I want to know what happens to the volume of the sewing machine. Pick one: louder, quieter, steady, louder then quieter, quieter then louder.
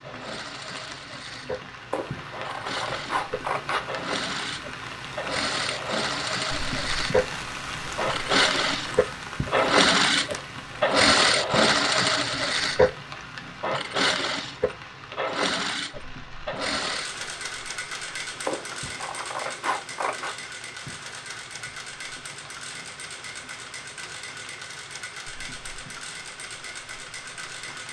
louder then quieter.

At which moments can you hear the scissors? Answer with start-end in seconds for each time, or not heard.
1.9-4.0, 18.4-20.4.